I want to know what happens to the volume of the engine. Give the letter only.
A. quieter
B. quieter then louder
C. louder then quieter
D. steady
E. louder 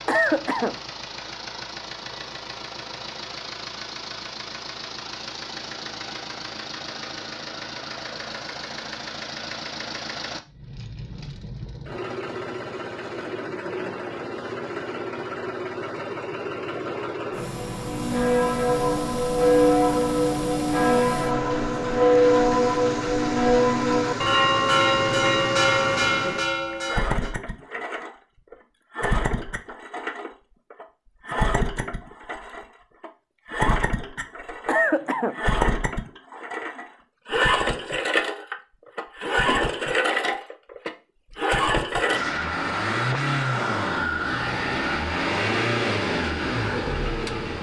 E.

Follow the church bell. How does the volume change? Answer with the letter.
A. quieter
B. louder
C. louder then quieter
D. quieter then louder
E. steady
E.